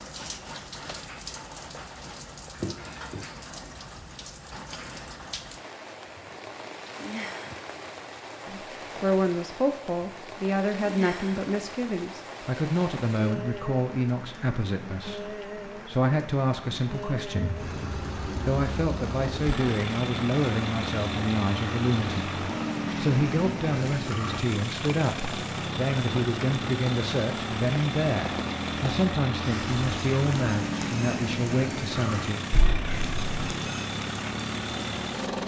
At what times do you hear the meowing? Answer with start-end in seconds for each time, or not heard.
2.6-3.8, 32.5-33.4.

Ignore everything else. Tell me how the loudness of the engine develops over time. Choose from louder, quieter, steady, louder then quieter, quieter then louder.
steady.